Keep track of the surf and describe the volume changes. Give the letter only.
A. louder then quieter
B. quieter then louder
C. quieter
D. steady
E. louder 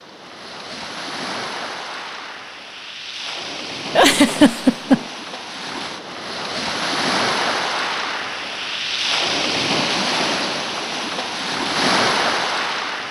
E.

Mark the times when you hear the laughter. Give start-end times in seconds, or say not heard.
3.9-5.0.